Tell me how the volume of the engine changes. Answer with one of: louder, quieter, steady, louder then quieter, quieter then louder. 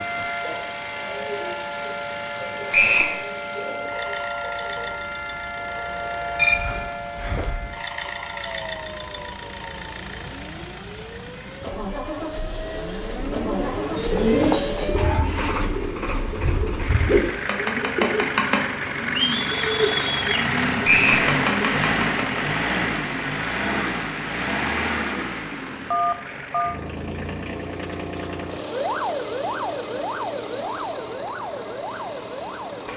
louder then quieter.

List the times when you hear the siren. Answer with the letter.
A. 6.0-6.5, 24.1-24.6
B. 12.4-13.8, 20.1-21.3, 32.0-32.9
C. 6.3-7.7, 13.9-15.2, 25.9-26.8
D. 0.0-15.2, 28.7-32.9
D.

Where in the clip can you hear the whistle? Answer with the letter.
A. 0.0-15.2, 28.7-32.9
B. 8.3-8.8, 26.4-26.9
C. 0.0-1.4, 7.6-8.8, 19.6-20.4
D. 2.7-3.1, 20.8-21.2
D.